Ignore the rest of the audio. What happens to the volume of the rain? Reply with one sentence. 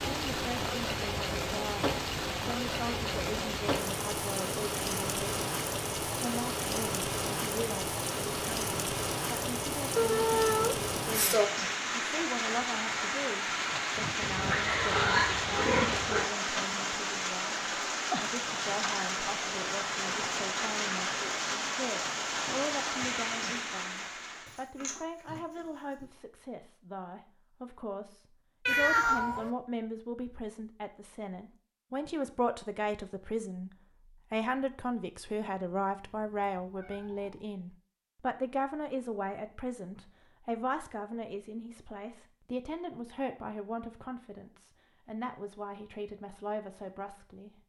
The volume of the rain stays about the same.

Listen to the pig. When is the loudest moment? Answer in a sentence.
The loudest moment of the pig is at 15 seconds.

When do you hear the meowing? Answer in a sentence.
The meowing can be heard from 9.9 to 11.5 s, from 28.6 to 29.5 s and from 36.0 to 37.4 s.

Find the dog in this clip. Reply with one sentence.
The dog can't be heard in this clip.